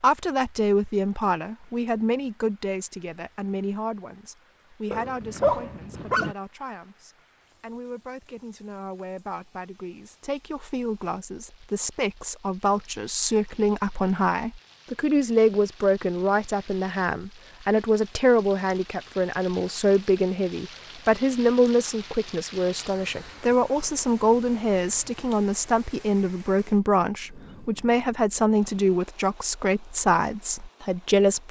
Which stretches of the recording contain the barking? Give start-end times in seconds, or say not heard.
4.9-6.3.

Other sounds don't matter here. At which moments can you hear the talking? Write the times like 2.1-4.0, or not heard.
0.0-31.4.